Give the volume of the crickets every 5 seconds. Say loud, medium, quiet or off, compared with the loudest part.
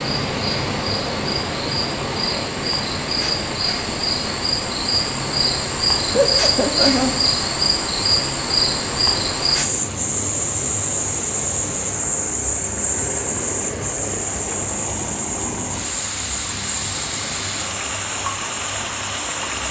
medium, loud, loud, medium.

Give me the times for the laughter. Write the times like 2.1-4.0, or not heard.
6.1-7.2.